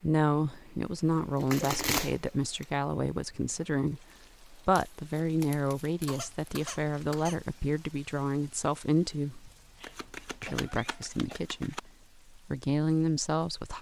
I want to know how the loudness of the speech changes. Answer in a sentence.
The volume of the speech stays about the same.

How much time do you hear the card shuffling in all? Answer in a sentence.
You can hear the card shuffling for 5 seconds altogether.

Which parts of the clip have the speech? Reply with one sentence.
You can hear the speech from 0.0 to 9.5 s and from 10.4 to 13.7 s.